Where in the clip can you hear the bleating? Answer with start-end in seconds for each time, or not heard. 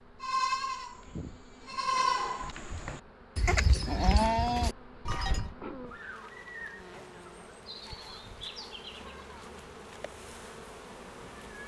0.2-5.5.